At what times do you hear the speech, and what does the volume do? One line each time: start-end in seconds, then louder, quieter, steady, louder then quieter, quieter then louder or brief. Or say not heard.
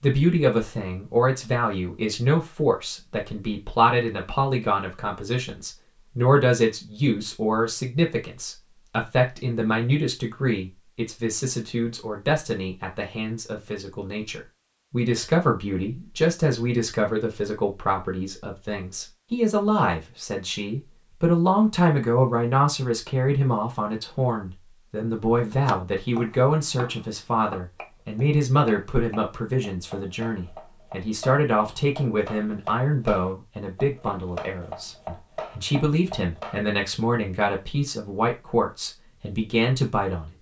0.0-40.3 steady.